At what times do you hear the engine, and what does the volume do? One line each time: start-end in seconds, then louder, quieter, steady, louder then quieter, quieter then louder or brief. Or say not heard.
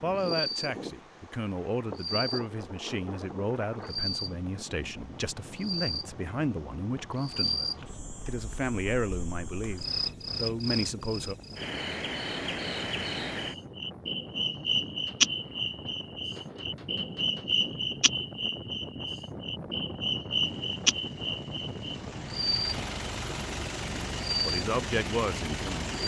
20.4-26.0 louder.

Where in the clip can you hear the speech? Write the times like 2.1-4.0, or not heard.
0.0-11.3, 24.4-25.9.